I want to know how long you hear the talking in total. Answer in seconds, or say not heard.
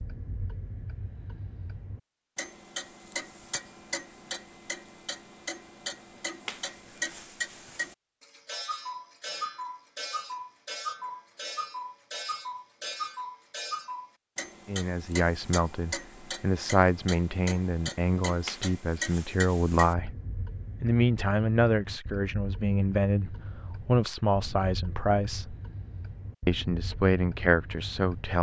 12 s.